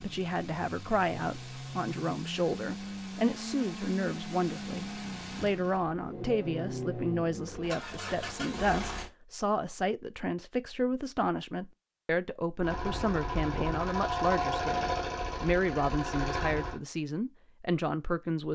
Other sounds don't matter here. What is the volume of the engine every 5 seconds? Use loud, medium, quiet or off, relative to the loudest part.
medium, medium, loud, loud.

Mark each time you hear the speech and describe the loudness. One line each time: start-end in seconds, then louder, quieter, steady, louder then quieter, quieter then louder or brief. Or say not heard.
0.0-18.4 steady.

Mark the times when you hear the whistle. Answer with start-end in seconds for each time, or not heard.
not heard.